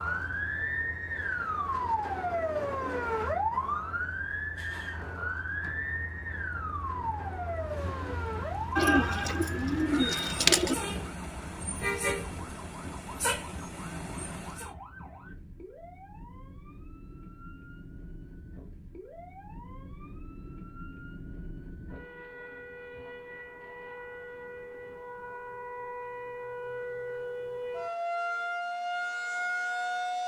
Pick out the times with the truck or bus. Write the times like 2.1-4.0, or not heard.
0.0-14.7.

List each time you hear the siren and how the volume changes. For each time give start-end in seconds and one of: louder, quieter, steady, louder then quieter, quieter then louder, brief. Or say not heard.
0.0-30.2 quieter then louder.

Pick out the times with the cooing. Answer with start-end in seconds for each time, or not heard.
8.8-10.8.